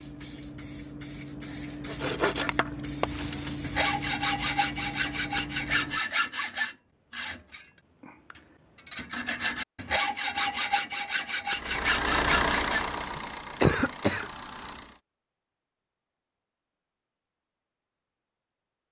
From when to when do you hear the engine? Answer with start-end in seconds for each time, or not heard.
11.5-15.0.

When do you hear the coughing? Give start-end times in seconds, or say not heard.
13.2-14.7.